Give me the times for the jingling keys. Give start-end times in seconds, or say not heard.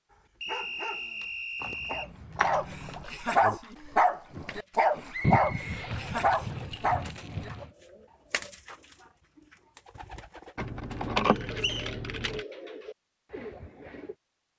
1.6-3.0, 5.2-7.7, 10.6-12.4.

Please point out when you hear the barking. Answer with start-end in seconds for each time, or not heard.
0.1-7.7.